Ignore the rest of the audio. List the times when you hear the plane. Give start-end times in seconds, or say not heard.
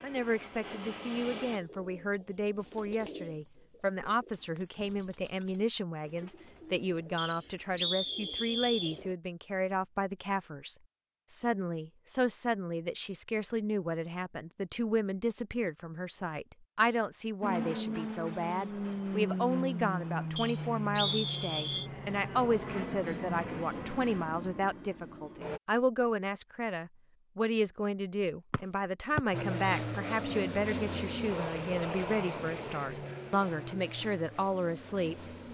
0.0-1.6, 17.4-25.6, 29.3-35.4.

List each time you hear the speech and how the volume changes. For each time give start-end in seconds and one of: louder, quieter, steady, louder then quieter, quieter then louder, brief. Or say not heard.
0.0-35.1 steady.